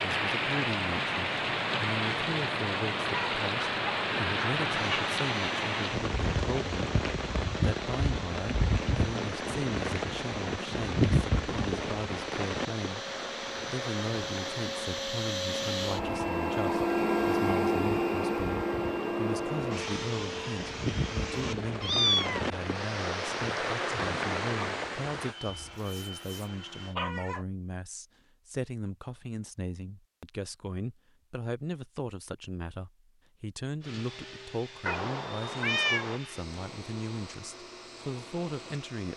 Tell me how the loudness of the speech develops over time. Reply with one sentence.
The loudness of the speech stays about the same.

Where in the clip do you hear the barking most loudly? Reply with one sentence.
The loudest moment of the barking is at 27 seconds.